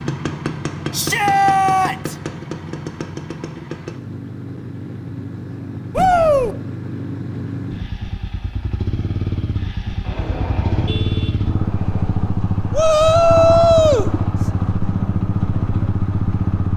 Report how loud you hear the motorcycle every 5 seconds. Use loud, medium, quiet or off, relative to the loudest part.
medium, medium, loud, loud.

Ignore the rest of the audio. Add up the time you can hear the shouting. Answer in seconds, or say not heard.
3 s.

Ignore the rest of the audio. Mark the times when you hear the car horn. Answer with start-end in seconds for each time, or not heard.
10.0-12.1.